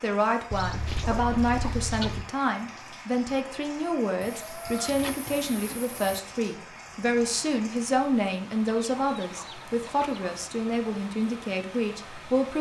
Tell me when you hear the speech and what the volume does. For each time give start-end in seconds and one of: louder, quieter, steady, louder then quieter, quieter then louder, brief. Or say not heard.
0.0-12.5 steady.